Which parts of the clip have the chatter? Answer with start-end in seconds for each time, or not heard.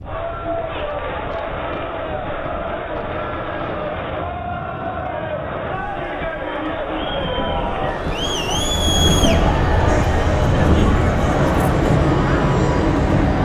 0.0-13.4.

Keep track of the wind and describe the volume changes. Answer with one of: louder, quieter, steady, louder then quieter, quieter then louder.
louder.